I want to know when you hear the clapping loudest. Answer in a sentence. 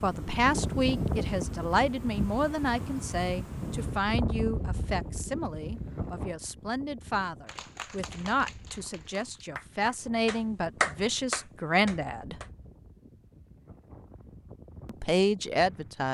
The volume of the clapping peaks at 11 seconds.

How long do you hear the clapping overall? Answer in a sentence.
You can hear the clapping for 5 seconds altogether.